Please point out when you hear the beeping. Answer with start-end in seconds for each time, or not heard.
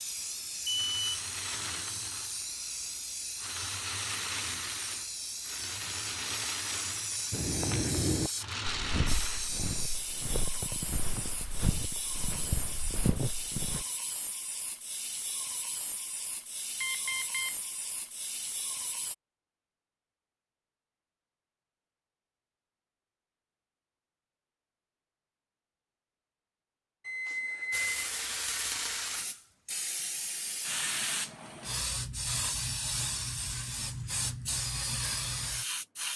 0.7-1.1, 16.8-17.6, 27.1-27.9.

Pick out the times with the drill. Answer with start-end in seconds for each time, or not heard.
not heard.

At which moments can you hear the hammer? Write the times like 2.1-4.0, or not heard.
not heard.